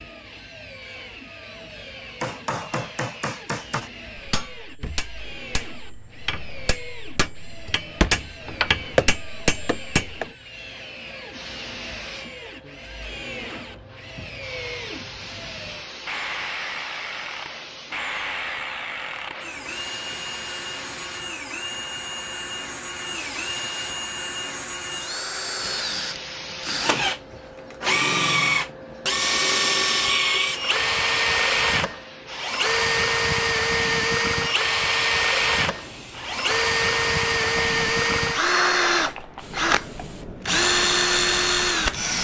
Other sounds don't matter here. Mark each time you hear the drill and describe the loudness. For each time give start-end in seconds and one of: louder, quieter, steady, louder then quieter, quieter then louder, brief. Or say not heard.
0.0-42.1 louder.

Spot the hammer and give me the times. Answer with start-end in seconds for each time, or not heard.
2.2-10.2.